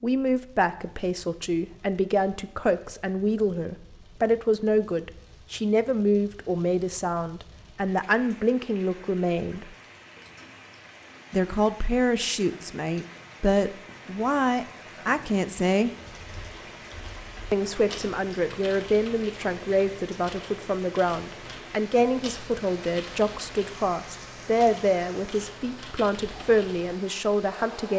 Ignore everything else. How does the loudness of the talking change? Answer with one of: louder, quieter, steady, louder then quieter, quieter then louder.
steady.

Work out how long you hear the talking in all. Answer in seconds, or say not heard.
25 s.